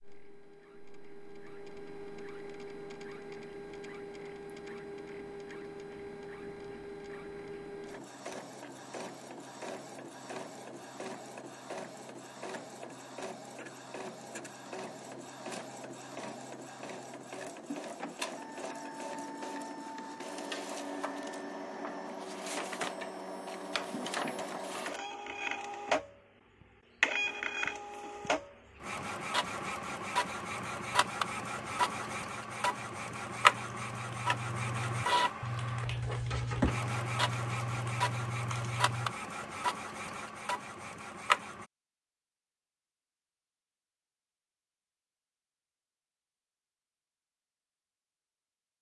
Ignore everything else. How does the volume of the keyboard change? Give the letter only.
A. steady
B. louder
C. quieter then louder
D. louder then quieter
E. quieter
B.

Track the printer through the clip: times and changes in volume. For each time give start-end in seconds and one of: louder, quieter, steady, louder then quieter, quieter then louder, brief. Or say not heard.
0.0-41.6 louder.